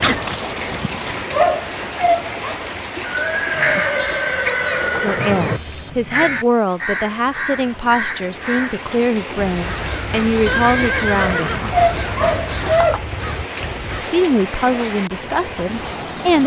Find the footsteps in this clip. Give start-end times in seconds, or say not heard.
not heard.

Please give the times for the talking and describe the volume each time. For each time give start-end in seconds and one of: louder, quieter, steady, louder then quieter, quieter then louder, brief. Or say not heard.
5.0-11.7 steady
14.0-16.4 brief.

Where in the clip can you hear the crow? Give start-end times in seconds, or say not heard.
3.5-14.1.